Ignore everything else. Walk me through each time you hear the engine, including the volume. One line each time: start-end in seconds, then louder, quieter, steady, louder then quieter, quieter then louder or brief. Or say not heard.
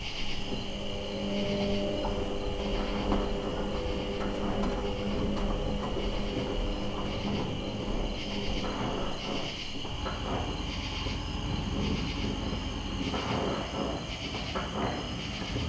0.0-15.6 quieter.